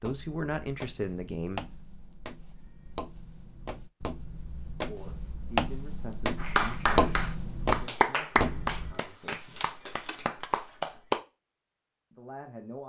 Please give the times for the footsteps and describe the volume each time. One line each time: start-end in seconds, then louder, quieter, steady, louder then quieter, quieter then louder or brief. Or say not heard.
0.1-8.9 louder.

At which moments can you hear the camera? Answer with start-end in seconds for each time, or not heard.
8.7-10.7.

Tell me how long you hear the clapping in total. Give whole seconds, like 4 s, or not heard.
5 s.